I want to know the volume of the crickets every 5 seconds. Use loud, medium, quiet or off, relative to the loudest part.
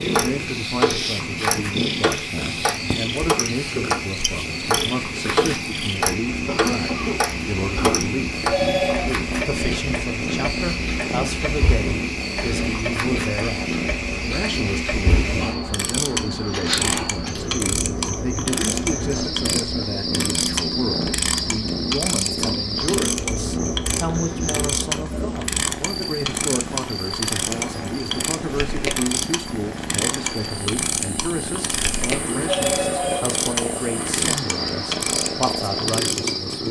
loud, loud, loud, loud, loud, medium, medium, loud.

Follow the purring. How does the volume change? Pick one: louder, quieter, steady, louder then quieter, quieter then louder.
steady.